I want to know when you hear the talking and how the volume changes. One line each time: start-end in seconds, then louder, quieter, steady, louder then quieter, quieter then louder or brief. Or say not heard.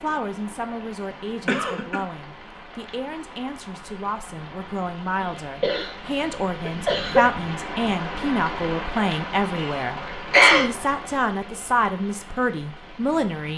0.0-13.5 louder.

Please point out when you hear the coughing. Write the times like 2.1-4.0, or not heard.
1.1-2.0, 5.2-7.2, 9.6-10.7.